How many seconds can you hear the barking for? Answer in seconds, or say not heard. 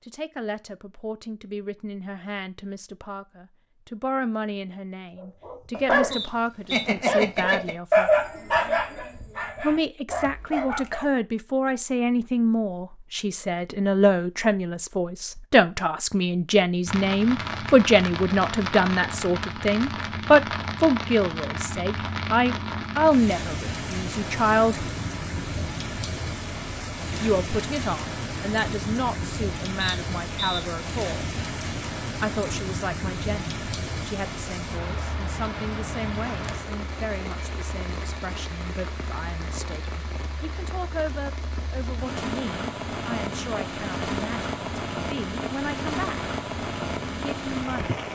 6 s.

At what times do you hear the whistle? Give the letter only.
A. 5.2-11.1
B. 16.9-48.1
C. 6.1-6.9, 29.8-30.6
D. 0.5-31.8
C.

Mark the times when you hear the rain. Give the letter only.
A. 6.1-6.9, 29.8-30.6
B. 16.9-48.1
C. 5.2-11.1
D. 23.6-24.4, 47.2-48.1
B.